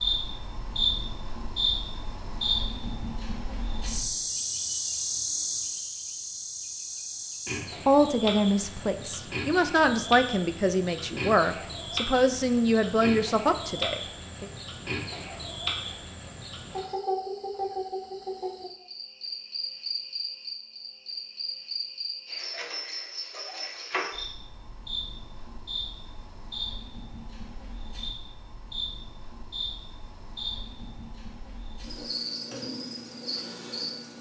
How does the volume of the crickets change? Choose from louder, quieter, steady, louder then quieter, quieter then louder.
quieter.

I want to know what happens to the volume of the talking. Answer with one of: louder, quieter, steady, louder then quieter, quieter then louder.
steady.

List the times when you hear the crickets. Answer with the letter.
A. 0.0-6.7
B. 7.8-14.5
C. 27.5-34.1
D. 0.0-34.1
D.